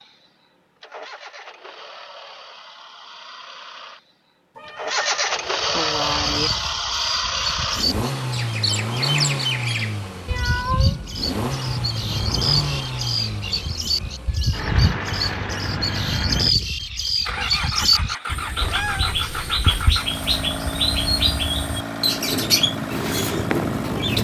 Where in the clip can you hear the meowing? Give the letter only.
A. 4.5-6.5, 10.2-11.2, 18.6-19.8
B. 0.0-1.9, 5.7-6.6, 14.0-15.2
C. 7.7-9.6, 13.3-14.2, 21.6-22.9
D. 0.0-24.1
A.